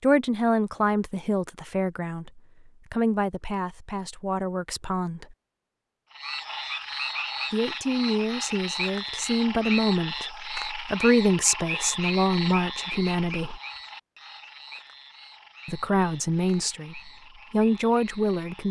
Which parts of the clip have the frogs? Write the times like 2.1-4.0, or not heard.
6.1-18.6.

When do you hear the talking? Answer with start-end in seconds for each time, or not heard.
0.0-5.3, 7.5-13.6, 15.7-18.6.